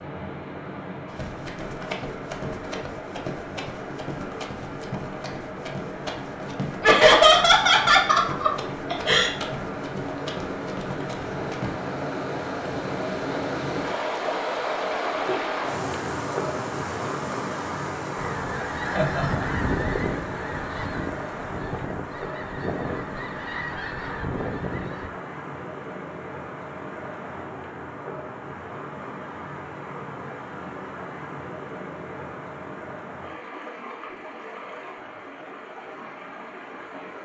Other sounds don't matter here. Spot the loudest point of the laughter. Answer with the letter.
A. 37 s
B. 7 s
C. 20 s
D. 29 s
B.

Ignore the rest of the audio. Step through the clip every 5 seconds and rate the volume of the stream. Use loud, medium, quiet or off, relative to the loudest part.
medium, medium, loud, loud, medium, medium, medium, medium.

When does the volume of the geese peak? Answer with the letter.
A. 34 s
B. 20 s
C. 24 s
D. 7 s
B.